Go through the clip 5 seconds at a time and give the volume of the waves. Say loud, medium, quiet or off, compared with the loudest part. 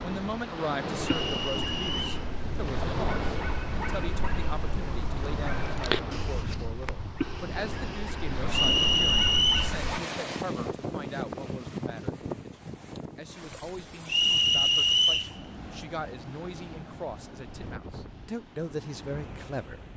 loud, loud, loud, medium.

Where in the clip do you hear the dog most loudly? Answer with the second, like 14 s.
6 s.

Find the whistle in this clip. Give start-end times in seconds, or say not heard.
1.1-2.2, 8.5-9.7, 14.1-15.3.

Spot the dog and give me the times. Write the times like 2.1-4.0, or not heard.
0.9-10.0.